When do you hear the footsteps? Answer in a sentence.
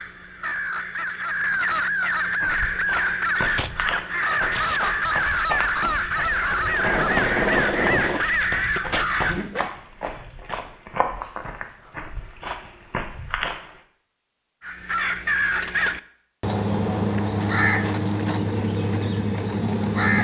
You can hear the footsteps from 2.4 to 13.8 s.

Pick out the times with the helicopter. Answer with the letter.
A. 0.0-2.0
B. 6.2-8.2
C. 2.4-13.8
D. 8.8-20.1
B.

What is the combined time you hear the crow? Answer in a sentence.
You can hear the crow for 15 seconds altogether.